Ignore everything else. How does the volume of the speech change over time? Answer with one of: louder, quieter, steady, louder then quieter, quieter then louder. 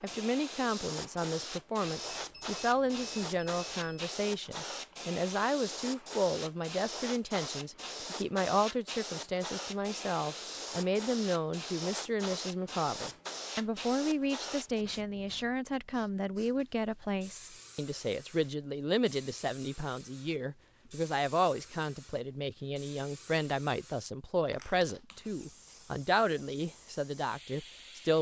steady.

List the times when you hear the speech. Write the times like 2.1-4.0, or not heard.
0.0-28.1.